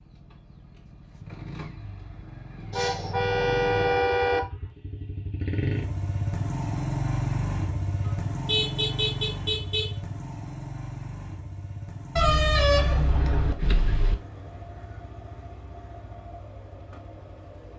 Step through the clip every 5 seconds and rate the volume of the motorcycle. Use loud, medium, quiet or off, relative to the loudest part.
medium, loud, medium, quiet.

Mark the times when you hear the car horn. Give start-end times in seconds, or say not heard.
2.7-4.4, 8.1-9.9, 12.2-14.2.